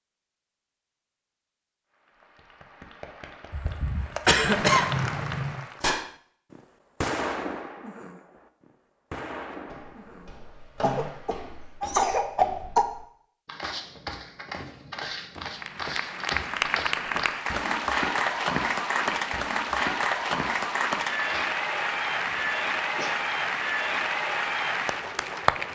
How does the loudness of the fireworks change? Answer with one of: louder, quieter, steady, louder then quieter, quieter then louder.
quieter then louder.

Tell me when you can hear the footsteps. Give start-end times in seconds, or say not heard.
9.5-21.5.